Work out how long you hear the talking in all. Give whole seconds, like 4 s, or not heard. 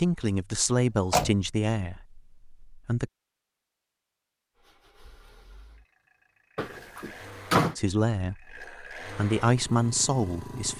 6 s.